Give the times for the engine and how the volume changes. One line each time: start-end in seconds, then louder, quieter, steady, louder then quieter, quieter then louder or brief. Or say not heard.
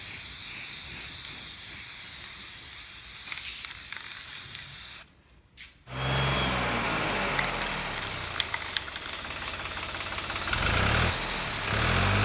5.8-12.2 quieter then louder.